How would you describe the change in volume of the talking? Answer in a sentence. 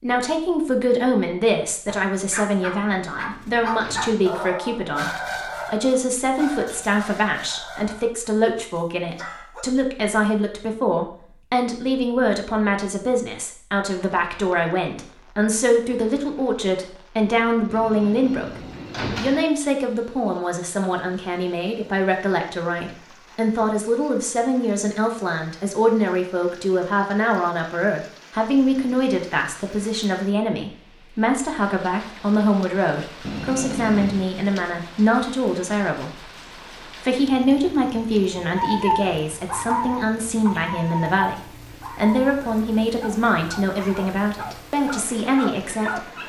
The loudness of the talking stays about the same.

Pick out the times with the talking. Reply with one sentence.
You can hear the talking from 0.0 to 36.3 s and from 37.0 to 46.0 s.